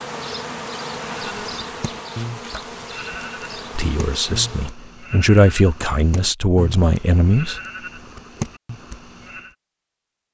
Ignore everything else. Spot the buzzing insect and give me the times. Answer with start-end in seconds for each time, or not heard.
0.0-4.8.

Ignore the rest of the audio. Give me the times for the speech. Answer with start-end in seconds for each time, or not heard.
3.8-7.5.